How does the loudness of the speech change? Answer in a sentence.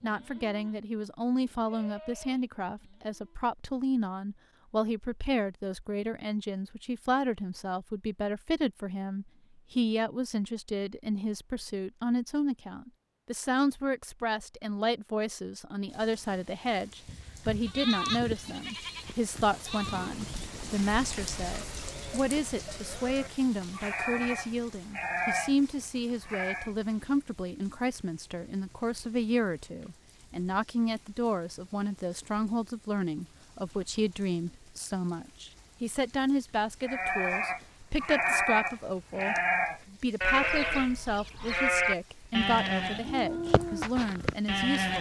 The volume of the speech stays about the same.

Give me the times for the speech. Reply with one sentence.
The speech can be heard from 0.0 to 44.9 s.